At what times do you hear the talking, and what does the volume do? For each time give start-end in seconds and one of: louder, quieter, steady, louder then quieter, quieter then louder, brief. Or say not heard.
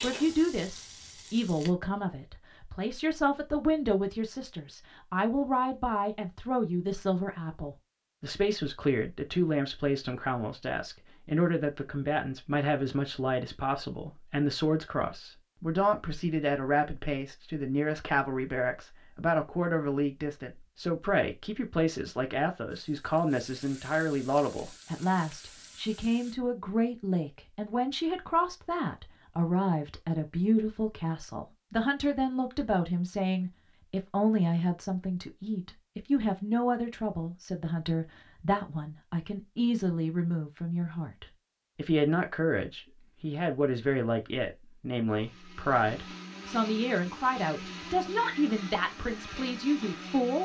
0.0-50.3 steady.